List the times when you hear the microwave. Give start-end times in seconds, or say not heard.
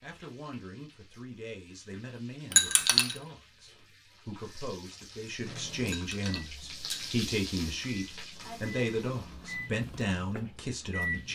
5.4-11.2.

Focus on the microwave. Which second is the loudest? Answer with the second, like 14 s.
11 s.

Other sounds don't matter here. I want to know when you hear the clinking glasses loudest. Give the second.
3 s.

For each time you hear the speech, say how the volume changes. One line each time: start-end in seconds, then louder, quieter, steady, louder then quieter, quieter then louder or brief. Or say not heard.
0.0-11.2 louder.